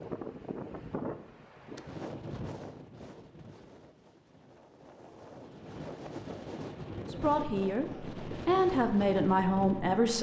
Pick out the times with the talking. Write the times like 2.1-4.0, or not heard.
7.0-10.1.